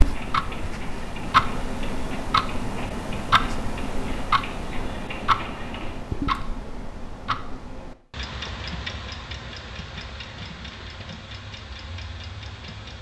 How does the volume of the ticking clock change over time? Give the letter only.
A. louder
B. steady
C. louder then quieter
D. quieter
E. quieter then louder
D.